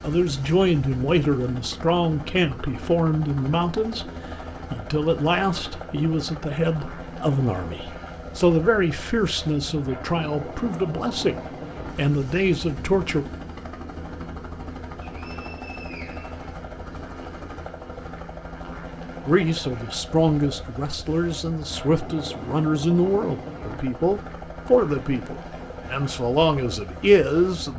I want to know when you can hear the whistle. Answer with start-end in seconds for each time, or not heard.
15.0-16.5.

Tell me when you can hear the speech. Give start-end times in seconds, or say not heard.
0.0-4.1, 4.7-13.2, 19.2-27.7.